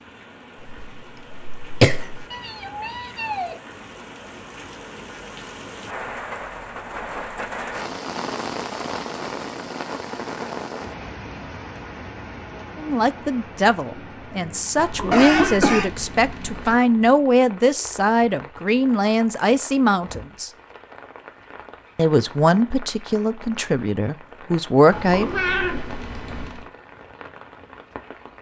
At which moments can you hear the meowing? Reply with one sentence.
The meowing can be heard from 2.3 to 3.5 s, from 14.8 to 16.8 s and from 24.9 to 26.6 s.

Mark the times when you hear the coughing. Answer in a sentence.
You can hear the coughing from 0.7 to 2.2 s and from 15.1 to 15.9 s.